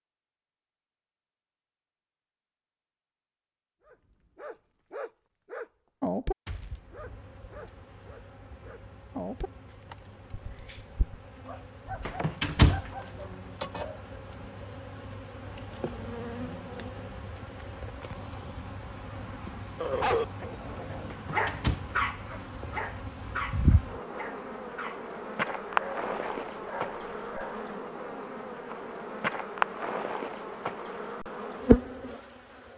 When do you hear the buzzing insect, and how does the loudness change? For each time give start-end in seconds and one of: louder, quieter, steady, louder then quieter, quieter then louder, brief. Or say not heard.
6.6-32.7 louder.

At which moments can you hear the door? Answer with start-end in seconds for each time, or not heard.
12.1-12.9, 21.1-21.9.